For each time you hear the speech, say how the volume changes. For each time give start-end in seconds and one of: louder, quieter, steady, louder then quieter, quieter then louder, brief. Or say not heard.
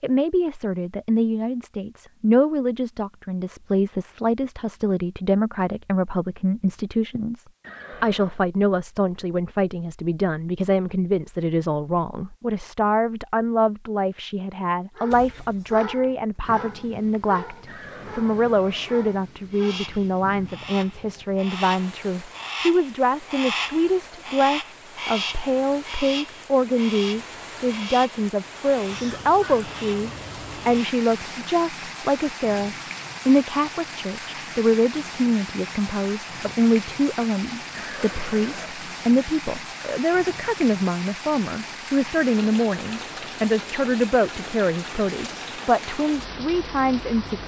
0.0-47.4 steady.